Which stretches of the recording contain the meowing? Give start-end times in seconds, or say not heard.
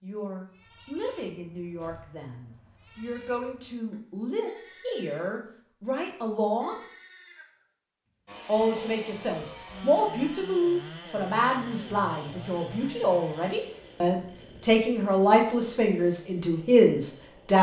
not heard.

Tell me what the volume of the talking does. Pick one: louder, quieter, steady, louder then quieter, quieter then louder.
louder.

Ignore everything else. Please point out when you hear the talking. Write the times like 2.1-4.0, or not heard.
0.0-6.8, 8.4-17.5.